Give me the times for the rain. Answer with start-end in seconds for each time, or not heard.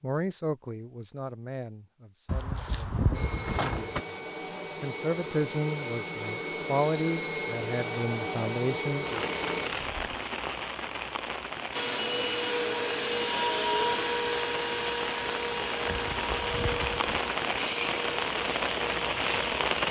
9.1-19.8.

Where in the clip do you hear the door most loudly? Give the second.
3 s.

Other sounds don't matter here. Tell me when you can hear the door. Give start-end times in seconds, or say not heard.
2.2-4.0, 9.4-10.0, 15.8-17.2.